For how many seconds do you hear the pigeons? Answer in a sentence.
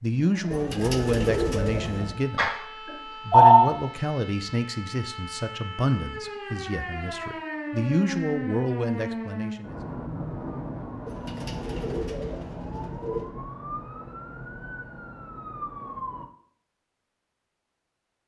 The pigeons can be heard for 4 seconds in total.